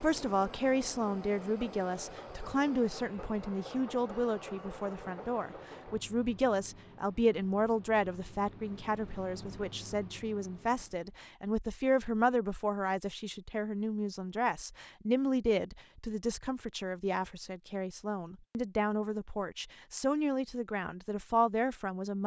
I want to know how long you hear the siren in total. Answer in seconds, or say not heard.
not heard.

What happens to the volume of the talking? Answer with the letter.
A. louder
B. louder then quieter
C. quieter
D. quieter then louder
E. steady
E.